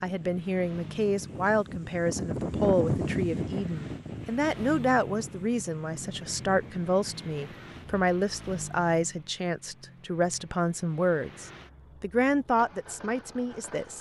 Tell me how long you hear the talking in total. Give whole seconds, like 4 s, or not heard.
14 s.